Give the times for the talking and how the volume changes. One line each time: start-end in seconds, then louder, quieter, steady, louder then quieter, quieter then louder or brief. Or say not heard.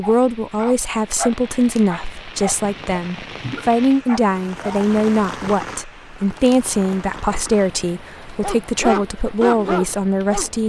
0.0-10.6 steady.